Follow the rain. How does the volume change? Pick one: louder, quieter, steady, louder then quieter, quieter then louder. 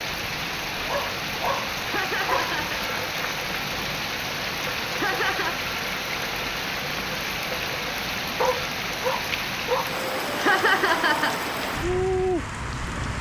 steady.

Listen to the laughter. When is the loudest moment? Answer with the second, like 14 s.
11 s.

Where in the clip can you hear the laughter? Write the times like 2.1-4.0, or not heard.
1.9-2.8, 4.9-5.5, 10.3-11.4.